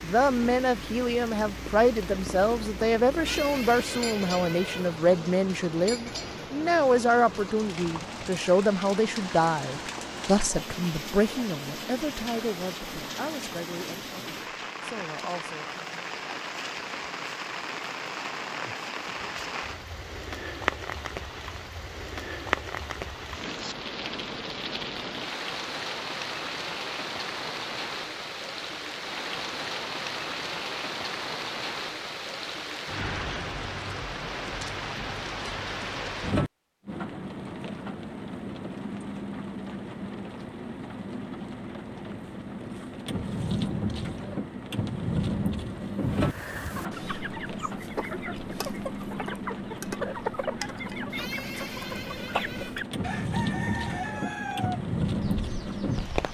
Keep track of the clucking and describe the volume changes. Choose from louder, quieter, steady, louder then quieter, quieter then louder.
steady.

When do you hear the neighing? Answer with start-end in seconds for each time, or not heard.
3.1-5.0, 51.1-52.9.